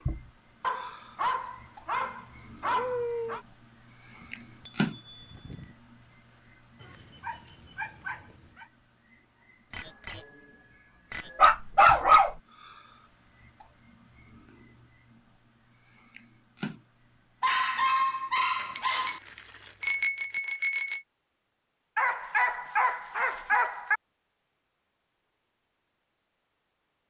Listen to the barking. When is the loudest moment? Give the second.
12 s.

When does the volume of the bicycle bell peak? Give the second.
20 s.